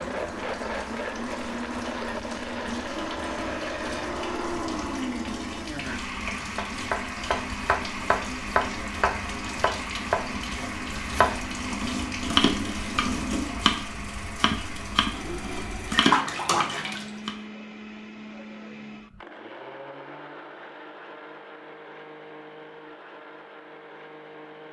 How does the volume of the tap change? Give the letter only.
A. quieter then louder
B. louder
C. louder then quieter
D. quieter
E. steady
B.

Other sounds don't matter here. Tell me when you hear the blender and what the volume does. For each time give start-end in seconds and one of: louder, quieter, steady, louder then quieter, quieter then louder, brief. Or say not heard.
0.0-24.6 quieter.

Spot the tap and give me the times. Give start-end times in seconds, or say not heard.
0.0-17.1.